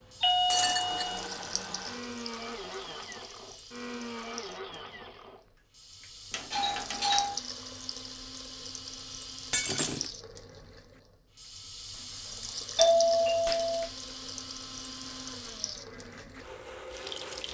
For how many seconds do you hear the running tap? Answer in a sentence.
The running tap can be heard for 17 seconds in total.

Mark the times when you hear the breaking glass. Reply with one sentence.
You can hear the breaking glass from 0.5 to 1.1 s, from 9.5 to 10.1 s and from 13.4 to 14.1 s.